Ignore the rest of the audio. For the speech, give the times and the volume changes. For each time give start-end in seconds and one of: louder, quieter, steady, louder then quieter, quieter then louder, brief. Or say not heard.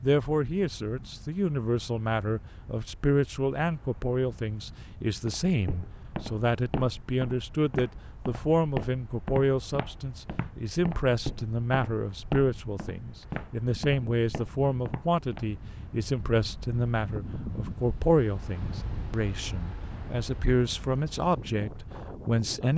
0.0-22.7 steady.